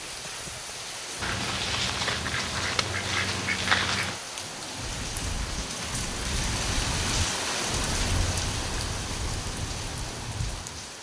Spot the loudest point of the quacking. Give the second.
4 s.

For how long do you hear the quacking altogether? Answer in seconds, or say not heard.
3 s.